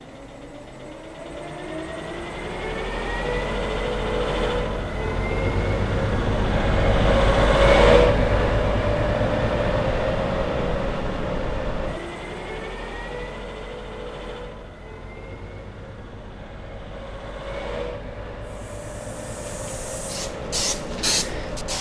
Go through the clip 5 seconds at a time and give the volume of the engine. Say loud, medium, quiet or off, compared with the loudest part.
medium, loud, medium, quiet, quiet.